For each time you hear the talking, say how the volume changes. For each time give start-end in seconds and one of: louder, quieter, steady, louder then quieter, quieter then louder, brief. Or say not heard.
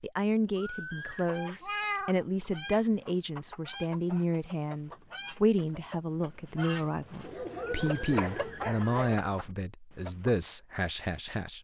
0.0-11.5 steady.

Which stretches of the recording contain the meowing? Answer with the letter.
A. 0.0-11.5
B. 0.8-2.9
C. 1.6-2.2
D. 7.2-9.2
C.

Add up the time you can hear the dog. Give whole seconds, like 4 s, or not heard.
2 s.